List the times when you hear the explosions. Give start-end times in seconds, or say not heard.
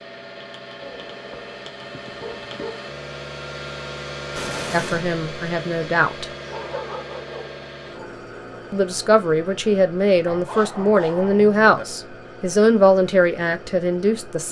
4.3-5.1.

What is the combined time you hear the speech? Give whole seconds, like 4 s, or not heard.
7 s.